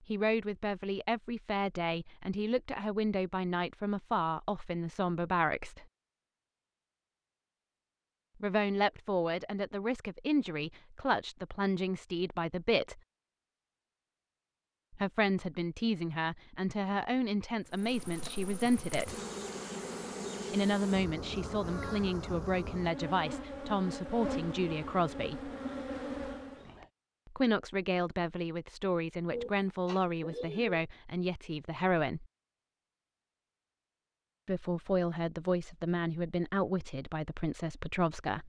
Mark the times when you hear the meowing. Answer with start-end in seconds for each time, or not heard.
not heard.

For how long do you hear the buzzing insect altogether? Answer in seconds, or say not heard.
9 s.